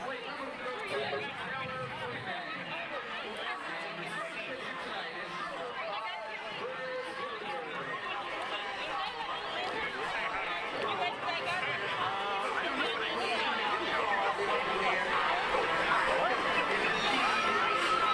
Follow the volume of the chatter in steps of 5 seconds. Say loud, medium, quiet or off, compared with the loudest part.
medium, medium, loud, loud.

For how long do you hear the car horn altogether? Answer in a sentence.
You can hear the car horn for 3 seconds altogether.